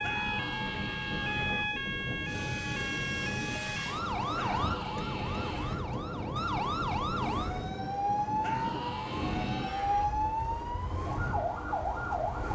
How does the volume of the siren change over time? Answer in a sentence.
The loudness of the siren stays about the same.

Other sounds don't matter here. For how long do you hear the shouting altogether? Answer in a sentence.
The shouting can be heard for 5 seconds in total.